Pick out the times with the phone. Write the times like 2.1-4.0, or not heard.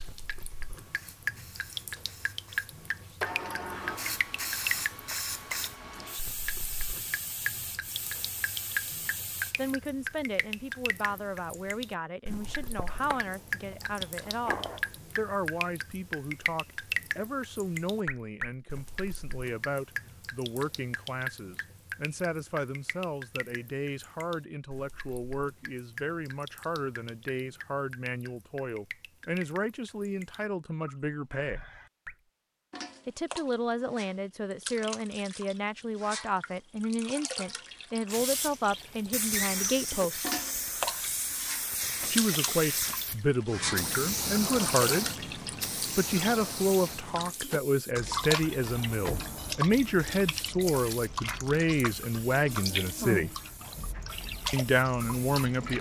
not heard.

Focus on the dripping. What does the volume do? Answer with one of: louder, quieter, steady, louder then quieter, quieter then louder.
quieter then louder.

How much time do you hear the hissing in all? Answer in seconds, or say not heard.
27 s.